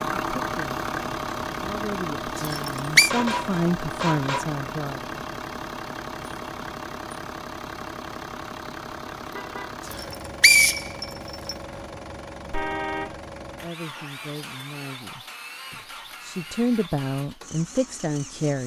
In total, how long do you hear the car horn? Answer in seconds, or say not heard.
3 s.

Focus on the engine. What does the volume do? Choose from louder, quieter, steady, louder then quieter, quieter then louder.
quieter.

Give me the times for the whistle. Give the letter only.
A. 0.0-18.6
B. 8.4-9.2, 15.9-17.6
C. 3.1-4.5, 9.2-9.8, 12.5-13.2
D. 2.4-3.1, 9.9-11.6
D.